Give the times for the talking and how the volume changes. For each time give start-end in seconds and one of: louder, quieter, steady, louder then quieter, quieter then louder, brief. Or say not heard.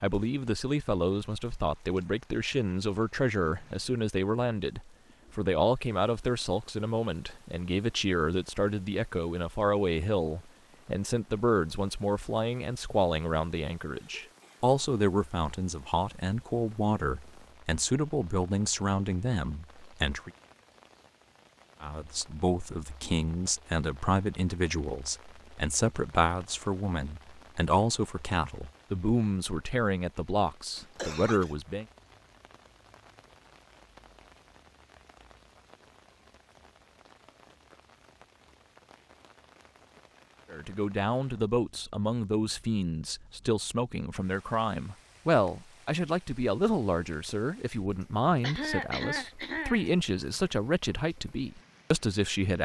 0.0-20.3 steady
21.8-31.9 steady
40.5-52.6 steady.